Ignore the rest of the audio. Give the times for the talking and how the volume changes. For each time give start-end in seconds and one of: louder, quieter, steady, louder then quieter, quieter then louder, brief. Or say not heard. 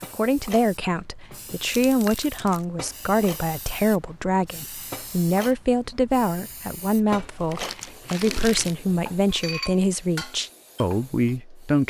0.0-11.8 steady.